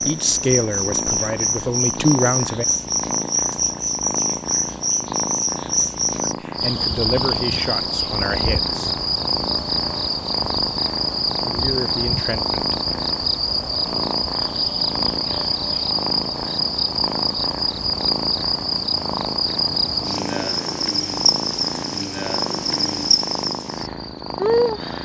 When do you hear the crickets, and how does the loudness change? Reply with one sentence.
You can hear the crickets from 0.0 to 24.9 s, at a steady volume.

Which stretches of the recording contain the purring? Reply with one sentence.
You can hear the purring from 0.0 to 24.9 s.